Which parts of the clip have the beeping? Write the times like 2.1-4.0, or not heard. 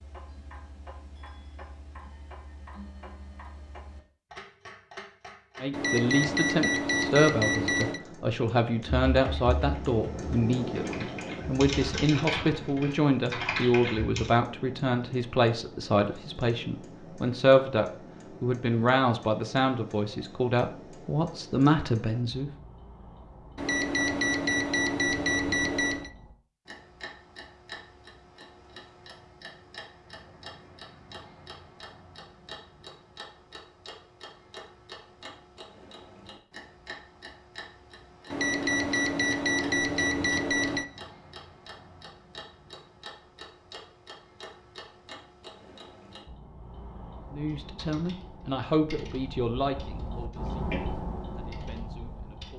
5.7-8.0, 23.6-26.1, 38.3-40.9.